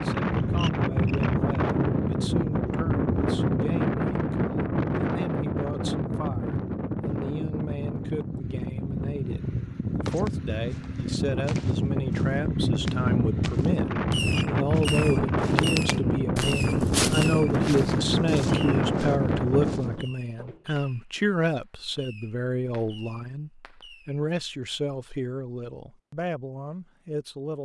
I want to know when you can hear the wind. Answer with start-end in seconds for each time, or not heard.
0.0-20.1.